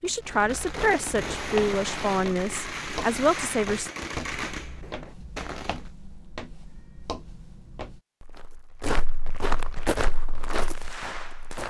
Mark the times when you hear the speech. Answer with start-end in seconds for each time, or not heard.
0.0-3.9.